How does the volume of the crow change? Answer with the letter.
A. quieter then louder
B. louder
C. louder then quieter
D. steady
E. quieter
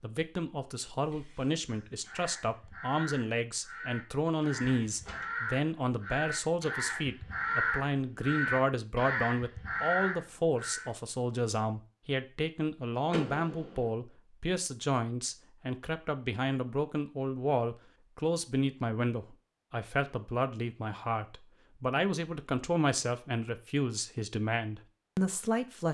B.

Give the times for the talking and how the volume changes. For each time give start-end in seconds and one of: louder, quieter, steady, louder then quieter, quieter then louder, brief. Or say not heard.
0.0-25.8 steady.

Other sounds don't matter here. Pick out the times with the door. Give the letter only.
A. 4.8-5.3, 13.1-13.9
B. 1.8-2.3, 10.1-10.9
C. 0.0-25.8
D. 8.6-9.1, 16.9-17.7
A.